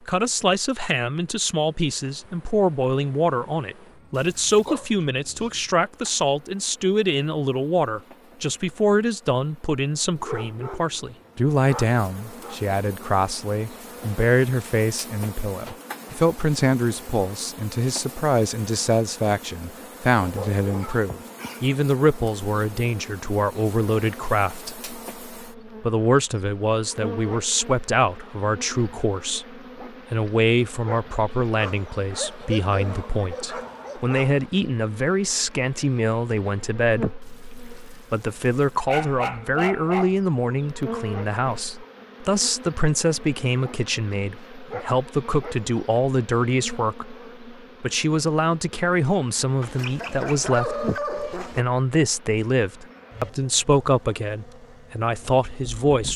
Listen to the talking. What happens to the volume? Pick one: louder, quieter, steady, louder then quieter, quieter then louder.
steady.